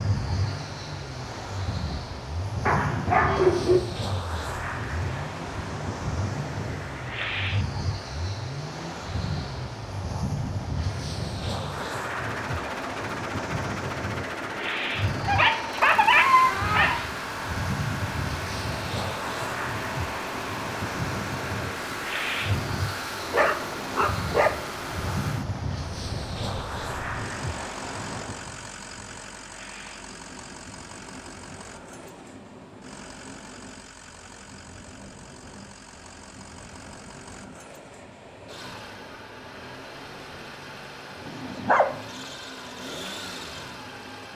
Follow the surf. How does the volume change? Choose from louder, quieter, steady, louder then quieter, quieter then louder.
quieter.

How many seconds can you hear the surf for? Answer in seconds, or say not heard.
44 s.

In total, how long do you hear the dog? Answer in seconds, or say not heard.
5 s.